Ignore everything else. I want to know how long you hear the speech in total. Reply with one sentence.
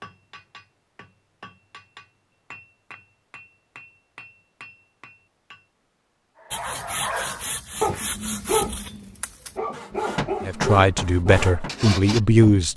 The speech can be heard for 2 seconds in total.